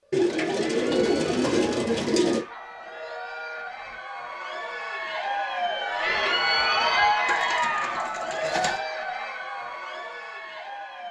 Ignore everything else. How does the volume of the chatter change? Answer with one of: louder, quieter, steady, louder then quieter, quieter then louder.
louder then quieter.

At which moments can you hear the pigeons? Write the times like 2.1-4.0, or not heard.
0.1-2.5, 7.2-8.8.